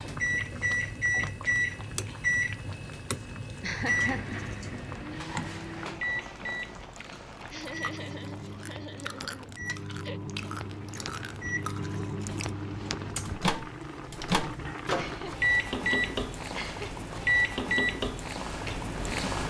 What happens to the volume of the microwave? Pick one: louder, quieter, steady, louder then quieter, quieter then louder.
quieter then louder.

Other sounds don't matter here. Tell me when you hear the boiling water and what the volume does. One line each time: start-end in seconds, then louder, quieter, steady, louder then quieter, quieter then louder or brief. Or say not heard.
0.0-19.4 quieter then louder.